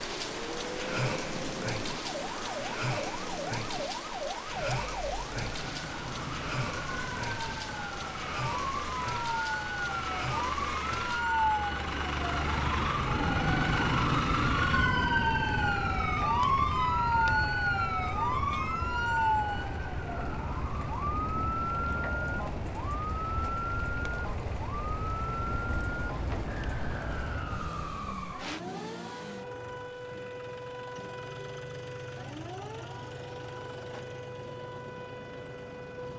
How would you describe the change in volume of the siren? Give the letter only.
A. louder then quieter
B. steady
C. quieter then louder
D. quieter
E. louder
A.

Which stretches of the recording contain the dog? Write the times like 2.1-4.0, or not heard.
not heard.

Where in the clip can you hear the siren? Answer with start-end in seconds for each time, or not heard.
0.0-36.1.